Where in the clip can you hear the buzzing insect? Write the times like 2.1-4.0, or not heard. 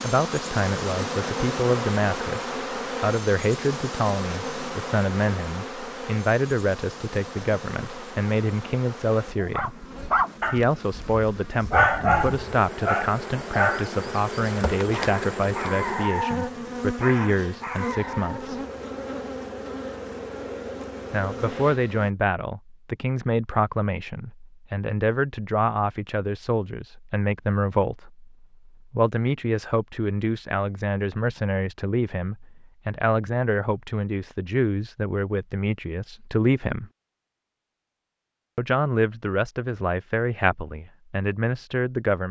0.0-22.1.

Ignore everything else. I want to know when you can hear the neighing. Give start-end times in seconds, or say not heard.
not heard.